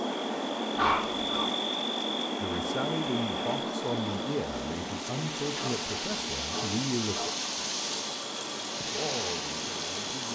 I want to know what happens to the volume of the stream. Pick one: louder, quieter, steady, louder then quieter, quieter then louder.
louder.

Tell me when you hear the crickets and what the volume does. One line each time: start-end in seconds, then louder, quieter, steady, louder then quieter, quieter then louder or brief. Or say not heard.
0.0-10.3 quieter.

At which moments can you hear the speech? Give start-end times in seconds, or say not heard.
2.4-7.3, 8.8-10.3.